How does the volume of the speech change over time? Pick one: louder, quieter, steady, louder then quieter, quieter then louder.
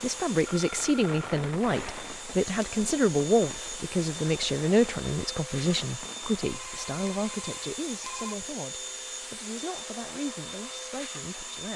quieter.